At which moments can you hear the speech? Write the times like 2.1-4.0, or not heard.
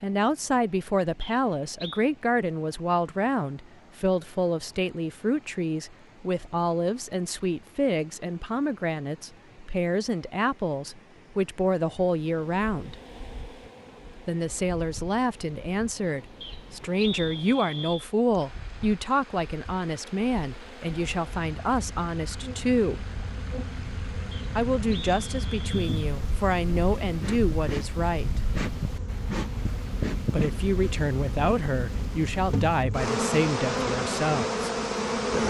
0.0-12.9, 14.2-23.1, 24.6-28.4, 30.3-34.6.